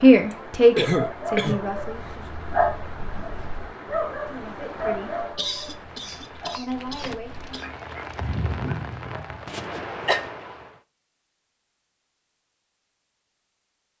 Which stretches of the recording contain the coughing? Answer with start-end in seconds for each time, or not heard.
0.3-1.6, 5.3-7.7, 9.4-10.2.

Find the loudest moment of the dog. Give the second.
3 s.